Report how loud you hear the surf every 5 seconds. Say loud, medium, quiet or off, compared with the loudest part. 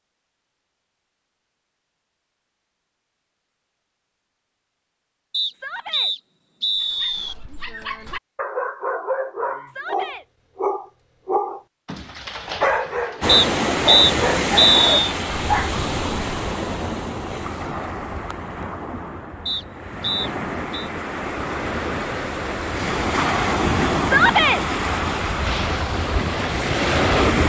off, off, loud, medium, loud, loud.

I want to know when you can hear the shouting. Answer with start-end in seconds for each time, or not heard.
5.5-6.1, 9.7-10.2, 24.0-24.6.